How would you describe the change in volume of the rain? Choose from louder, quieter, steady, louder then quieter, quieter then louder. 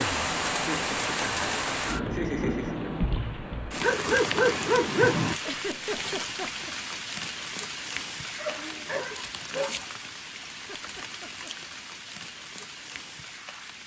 quieter.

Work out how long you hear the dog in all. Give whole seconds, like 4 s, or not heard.
3 s.